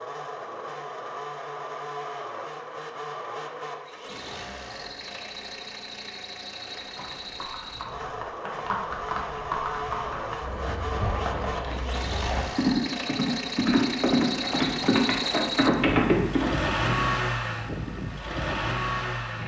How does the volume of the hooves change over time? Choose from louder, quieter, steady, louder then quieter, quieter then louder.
louder.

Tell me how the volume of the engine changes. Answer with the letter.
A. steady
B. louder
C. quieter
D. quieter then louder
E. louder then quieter
B.